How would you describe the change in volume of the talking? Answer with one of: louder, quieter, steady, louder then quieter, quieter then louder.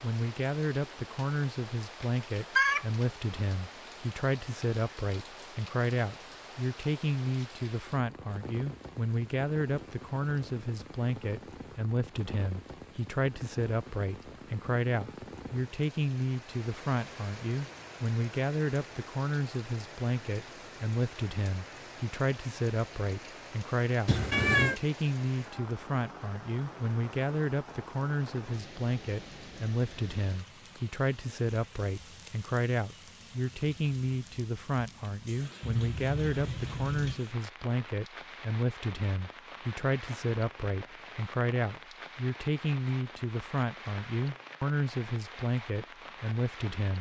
steady.